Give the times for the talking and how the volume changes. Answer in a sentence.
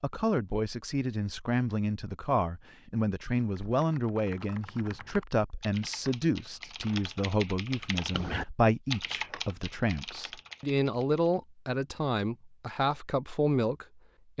You can hear the talking from 0.0 to 14.3 s, at a steady volume.